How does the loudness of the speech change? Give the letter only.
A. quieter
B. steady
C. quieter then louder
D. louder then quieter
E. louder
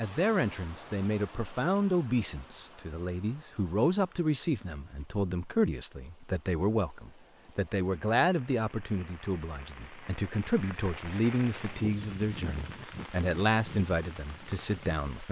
B.